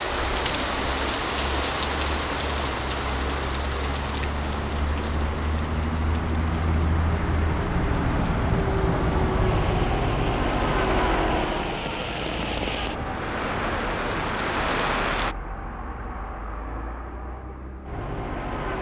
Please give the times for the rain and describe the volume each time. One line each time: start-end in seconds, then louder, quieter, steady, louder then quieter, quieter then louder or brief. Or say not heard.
0.0-15.3 quieter then louder.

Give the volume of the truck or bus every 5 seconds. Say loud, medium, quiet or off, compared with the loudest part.
medium, loud, loud, medium.